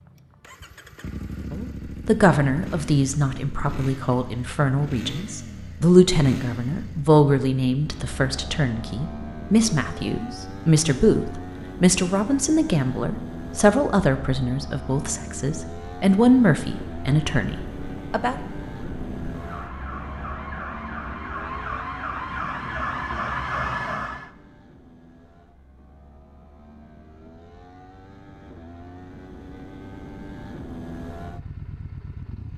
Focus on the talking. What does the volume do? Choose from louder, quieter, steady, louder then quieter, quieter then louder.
steady.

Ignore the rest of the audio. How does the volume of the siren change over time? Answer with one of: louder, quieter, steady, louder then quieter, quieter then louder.
louder.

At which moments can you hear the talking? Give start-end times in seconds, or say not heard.
1.5-18.4.